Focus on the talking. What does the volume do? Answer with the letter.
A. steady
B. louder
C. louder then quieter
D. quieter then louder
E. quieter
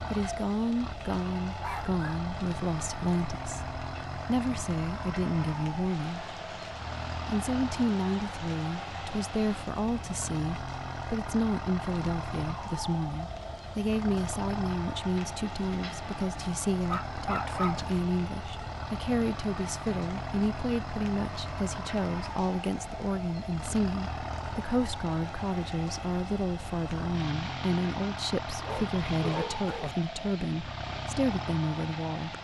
A.